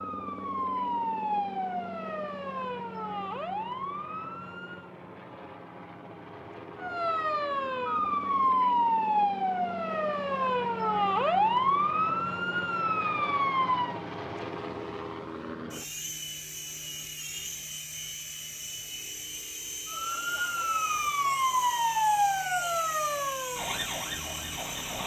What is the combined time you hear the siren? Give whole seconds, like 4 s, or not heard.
17 s.